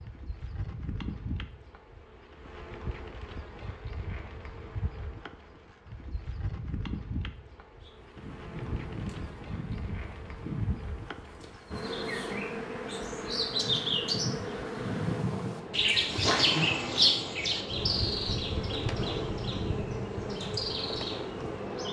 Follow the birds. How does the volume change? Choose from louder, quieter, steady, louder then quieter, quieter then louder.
louder then quieter.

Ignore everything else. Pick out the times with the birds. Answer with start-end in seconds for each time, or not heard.
7.8-21.8.